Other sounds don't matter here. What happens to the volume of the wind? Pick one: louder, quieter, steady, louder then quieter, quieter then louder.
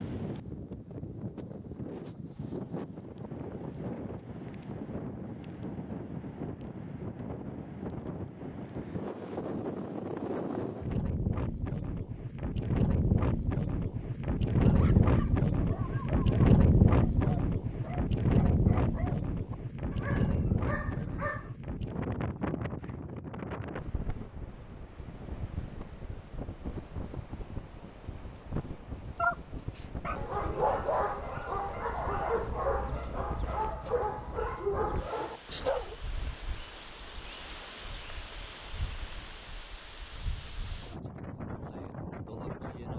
louder then quieter.